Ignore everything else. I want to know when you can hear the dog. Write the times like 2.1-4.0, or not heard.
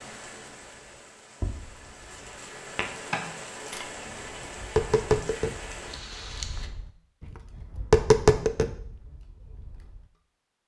not heard.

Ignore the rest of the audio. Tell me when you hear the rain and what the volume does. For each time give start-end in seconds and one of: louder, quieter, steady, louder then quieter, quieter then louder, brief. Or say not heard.
0.0-6.7 louder.